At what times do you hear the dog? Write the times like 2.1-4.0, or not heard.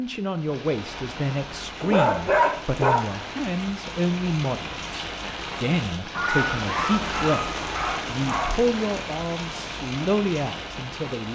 1.8-3.6, 6.2-8.6.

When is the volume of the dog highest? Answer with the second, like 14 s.
2 s.